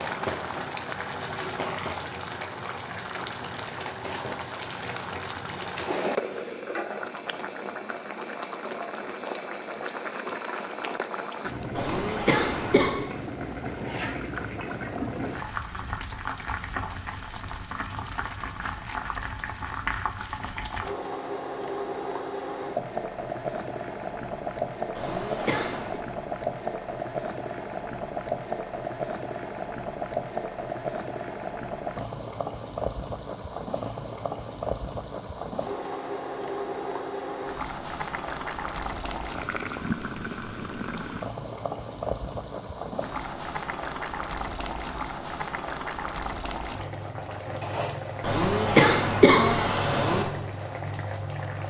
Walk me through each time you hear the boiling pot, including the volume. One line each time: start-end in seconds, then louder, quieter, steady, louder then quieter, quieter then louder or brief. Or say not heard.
0.0-51.6 steady.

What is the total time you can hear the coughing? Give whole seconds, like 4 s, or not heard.
4 s.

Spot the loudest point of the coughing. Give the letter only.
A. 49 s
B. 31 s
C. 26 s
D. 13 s
A.